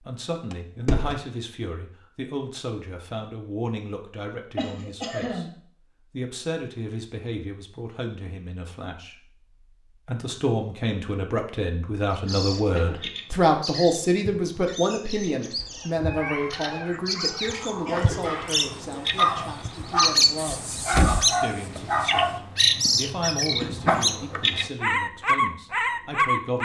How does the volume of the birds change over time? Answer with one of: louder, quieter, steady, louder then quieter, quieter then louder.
louder.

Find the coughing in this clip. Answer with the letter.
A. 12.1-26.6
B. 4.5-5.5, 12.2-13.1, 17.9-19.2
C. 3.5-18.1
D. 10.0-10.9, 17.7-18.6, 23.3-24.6
B.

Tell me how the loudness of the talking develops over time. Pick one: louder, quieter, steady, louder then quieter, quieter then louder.
louder then quieter.